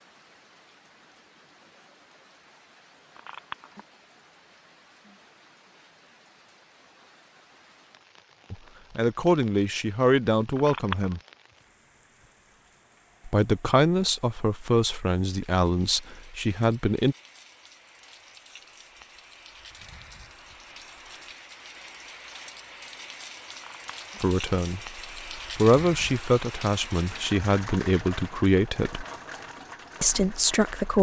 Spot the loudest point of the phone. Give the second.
11 s.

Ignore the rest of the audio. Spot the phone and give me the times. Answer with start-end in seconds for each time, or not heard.
3.1-3.9, 10.6-11.2, 23.5-24.2.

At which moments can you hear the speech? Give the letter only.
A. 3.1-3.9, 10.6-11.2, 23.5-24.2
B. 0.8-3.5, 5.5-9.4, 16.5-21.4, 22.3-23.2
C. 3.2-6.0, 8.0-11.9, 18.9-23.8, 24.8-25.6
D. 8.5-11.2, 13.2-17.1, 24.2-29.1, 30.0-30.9
D.